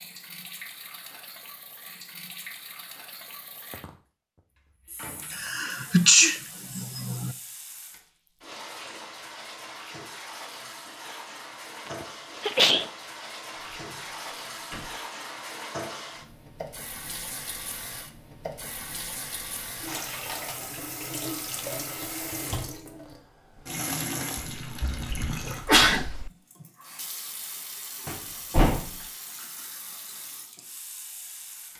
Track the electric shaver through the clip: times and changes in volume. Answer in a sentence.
The electric shaver can't be heard in this clip.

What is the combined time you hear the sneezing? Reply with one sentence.
The sneezing can be heard for 5 seconds in total.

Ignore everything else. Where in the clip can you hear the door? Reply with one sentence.
The door can be heard from 5.0 to 5.8 s, from 13.8 to 14.9 s and from 28.1 to 29.1 s.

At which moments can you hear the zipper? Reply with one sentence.
The zipper can't be heard in this clip.